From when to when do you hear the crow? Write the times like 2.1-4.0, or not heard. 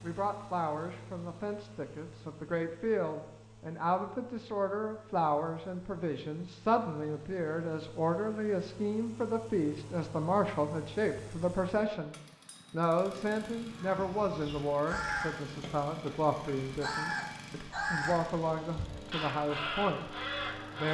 13.8-20.9.